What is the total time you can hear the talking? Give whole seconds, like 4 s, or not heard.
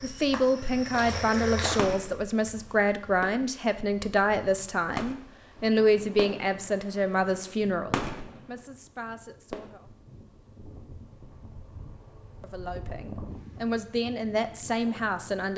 13 s.